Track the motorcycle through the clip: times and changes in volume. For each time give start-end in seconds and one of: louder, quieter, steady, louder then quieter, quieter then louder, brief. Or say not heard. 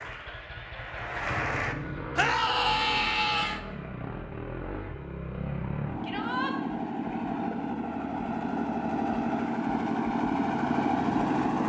0.0-11.6 louder.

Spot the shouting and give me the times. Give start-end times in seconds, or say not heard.
2.1-3.6, 6.0-6.5.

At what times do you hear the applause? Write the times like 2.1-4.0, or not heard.
0.0-1.8.